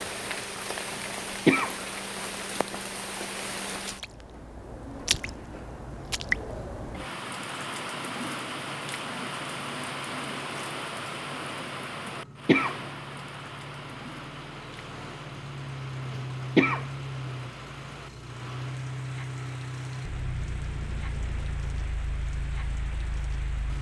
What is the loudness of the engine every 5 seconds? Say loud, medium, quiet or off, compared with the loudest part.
medium, quiet, medium, loud, loud.